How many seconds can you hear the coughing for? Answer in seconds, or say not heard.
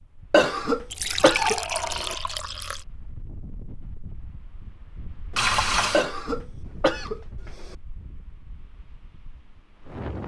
4 s.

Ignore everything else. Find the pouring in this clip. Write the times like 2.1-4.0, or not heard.
0.9-2.9, 5.3-6.0.